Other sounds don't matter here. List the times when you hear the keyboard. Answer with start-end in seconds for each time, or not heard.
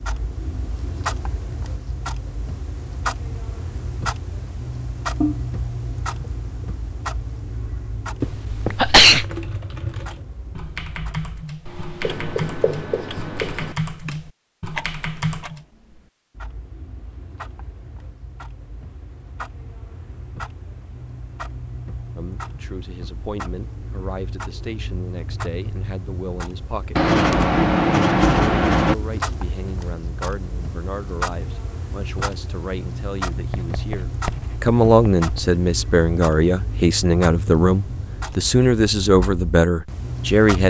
9.1-15.7.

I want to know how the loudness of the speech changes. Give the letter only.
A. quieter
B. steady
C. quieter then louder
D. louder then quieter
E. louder
E.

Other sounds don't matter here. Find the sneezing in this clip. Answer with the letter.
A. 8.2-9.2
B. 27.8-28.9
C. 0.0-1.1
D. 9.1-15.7
A.